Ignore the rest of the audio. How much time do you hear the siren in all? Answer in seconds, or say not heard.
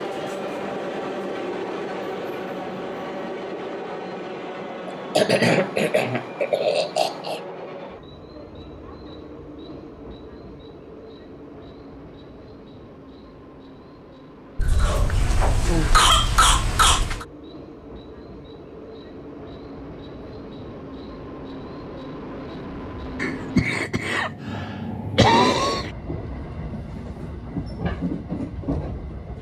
not heard.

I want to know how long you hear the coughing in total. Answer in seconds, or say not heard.
8 s.